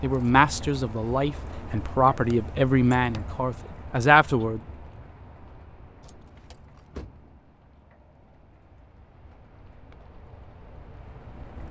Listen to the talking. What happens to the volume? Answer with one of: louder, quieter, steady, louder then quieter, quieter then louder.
louder.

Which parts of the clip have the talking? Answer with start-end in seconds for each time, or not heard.
0.0-4.6.